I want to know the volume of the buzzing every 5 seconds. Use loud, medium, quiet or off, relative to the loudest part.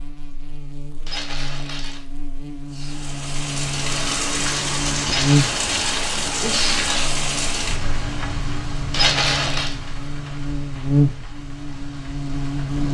medium, loud, loud.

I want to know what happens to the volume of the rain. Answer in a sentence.
The volume of the rain goes down.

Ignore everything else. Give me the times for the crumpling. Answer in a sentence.
The crumpling can be heard from 1.1 to 2.0 s, from 5.0 to 7.0 s and from 8.9 to 9.8 s.